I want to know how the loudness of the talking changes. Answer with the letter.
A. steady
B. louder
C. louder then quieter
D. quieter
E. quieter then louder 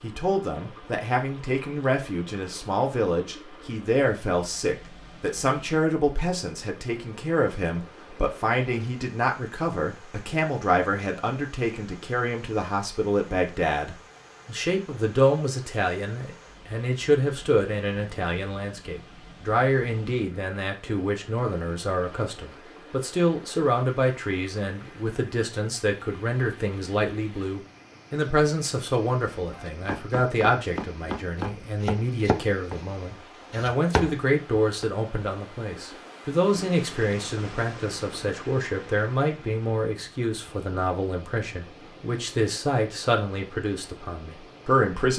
A.